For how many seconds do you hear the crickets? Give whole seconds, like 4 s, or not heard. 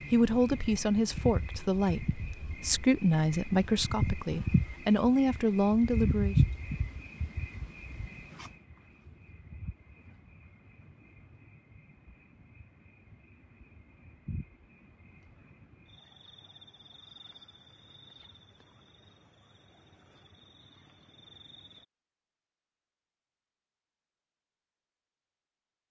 22 s.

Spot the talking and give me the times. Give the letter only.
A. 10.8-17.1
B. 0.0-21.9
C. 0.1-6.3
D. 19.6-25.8
C.